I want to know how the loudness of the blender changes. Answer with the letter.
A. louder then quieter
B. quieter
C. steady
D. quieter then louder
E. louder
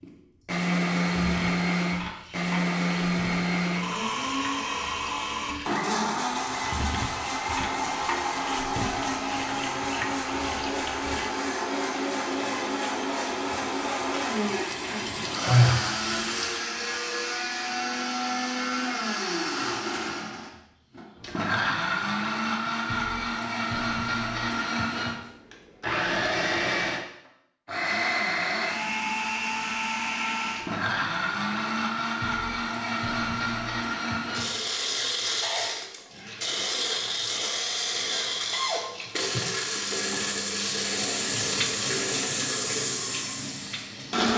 C.